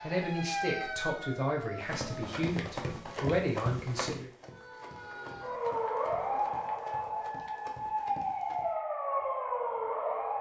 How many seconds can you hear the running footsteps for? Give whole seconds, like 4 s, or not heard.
7 s.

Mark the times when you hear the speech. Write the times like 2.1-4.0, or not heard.
0.0-4.3.